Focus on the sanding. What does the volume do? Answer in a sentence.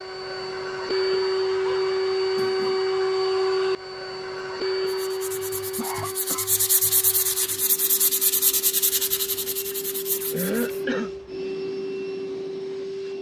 The loudness of the sanding goes up, then down.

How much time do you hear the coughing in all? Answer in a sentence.
You can hear the coughing for 4 seconds altogether.